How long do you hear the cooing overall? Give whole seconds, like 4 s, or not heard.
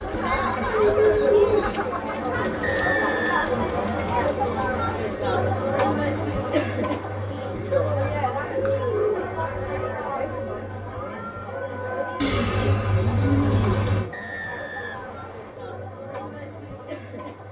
5 s.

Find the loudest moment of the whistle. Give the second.
3 s.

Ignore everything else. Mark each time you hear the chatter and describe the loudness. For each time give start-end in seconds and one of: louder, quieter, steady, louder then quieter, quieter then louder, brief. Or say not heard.
0.0-17.4 quieter.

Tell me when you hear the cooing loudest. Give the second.
1 s.